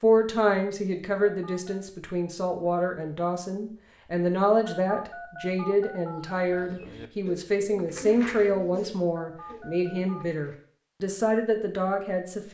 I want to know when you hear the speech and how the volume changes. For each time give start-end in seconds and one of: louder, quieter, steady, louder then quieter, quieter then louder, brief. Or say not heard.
0.0-12.5 steady.